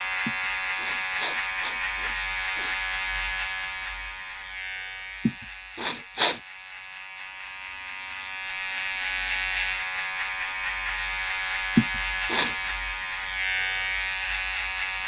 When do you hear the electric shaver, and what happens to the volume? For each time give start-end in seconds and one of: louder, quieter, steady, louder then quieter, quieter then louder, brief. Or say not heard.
0.0-15.0 quieter then louder.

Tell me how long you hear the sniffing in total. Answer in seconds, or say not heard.
5 s.